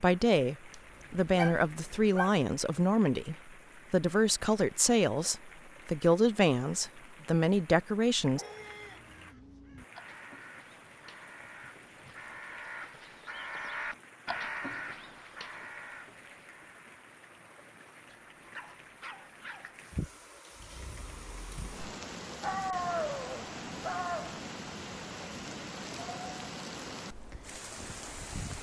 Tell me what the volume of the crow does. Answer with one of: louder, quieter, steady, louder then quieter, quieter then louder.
louder then quieter.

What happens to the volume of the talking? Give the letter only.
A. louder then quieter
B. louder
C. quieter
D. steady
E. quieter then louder
D.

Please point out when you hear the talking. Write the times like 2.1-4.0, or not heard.
0.0-8.4.